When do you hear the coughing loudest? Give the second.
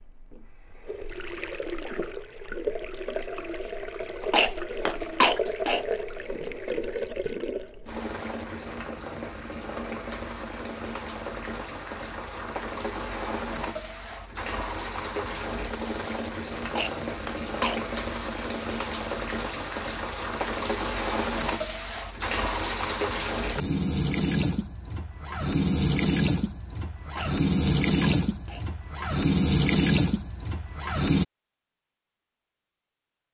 5 s.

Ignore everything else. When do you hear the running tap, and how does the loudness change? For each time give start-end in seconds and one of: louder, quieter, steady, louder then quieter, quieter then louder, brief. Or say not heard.
0.0-31.2 louder.